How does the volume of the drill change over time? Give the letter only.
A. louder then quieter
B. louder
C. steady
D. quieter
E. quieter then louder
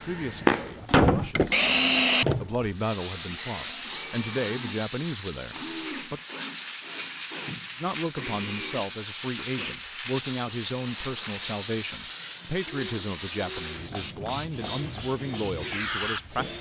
D.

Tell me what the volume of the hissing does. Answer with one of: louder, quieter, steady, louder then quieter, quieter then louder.
steady.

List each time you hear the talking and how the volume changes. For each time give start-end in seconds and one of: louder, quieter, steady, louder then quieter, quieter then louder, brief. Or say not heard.
0.1-6.2 louder
7.8-16.5 steady.